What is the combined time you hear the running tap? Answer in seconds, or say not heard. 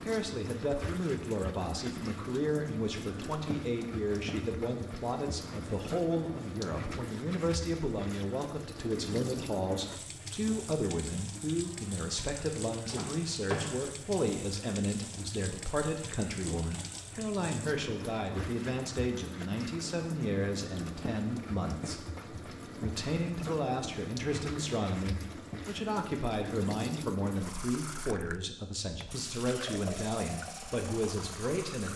32 s.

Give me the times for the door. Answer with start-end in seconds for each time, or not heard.
12.8-13.9.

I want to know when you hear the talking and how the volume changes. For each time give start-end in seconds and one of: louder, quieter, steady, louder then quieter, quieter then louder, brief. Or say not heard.
0.0-31.9 steady.